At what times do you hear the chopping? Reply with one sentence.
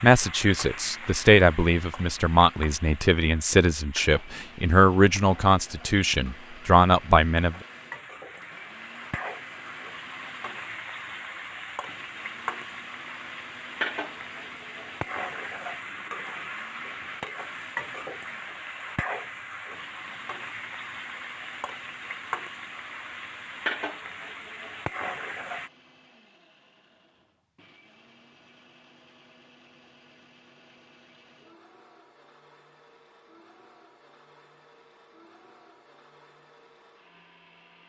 You can't hear the chopping here.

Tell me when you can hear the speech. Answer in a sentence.
You can hear the speech from 0.0 to 7.5 s.